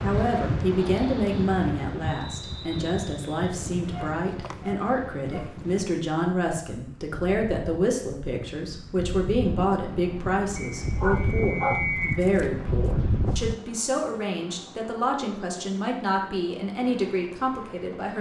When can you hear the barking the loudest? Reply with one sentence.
The volume of the barking peaks at 12 seconds.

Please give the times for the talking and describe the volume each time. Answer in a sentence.
The talking can be heard from 0.0 to 18.1 s, at a steady volume.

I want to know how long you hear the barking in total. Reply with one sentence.
The barking can be heard for 4 seconds in total.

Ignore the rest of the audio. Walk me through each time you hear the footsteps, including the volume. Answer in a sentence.
You can't hear the footsteps here.